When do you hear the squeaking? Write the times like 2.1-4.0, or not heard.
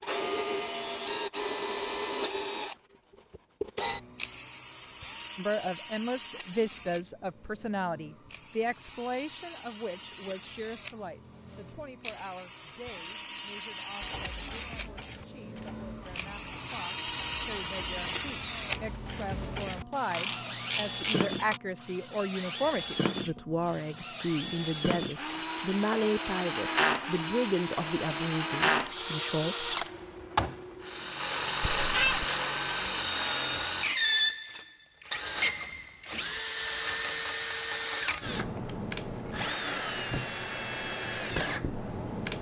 31.6-32.2.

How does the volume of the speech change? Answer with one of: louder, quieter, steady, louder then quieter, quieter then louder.
quieter then louder.